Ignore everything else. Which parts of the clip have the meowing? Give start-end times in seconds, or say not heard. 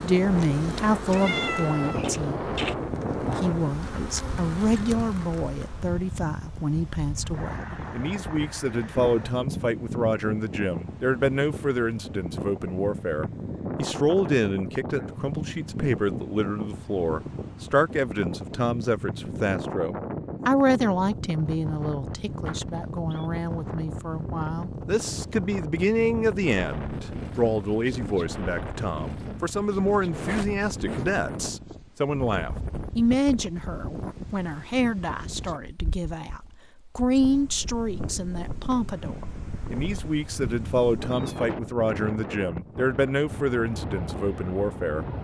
1.1-2.8, 22.4-23.2, 38.8-41.5.